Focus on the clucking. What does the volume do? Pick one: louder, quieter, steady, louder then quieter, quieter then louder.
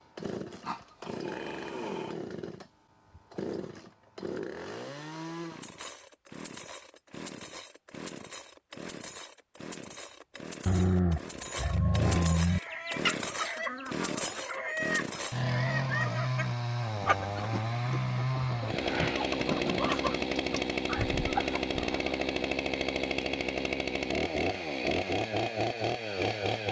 steady.